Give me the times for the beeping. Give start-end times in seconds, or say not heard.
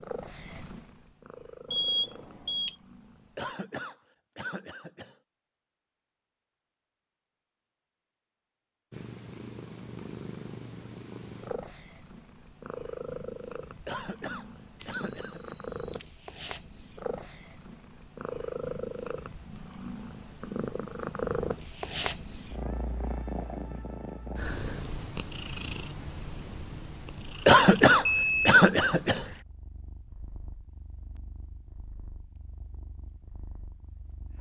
1.7-2.8, 14.8-16.1, 28.1-28.6.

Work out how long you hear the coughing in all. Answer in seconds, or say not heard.
5 s.